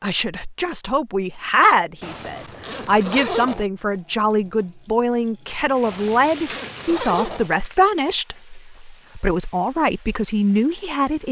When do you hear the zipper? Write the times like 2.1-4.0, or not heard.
2.0-3.6, 5.8-7.5.